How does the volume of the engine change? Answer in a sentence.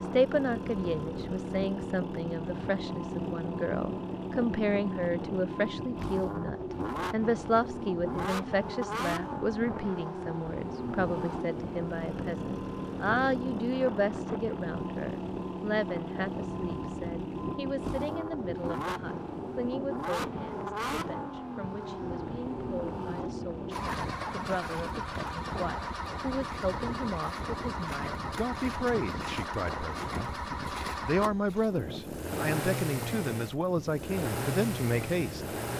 The volume of the engine stays about the same.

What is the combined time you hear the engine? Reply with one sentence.
The engine can be heard for 36 seconds in total.